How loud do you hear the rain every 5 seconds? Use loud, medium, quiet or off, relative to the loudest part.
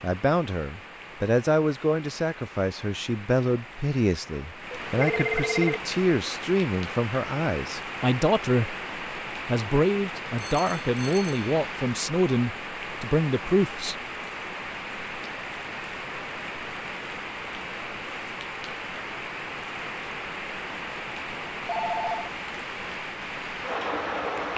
medium, loud, loud, loud, loud.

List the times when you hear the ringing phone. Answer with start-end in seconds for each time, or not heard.
4.9-5.8, 10.3-11.6, 21.6-22.3.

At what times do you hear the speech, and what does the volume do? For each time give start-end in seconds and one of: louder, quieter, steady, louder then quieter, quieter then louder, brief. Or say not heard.
0.0-8.8 steady
9.4-13.9 steady.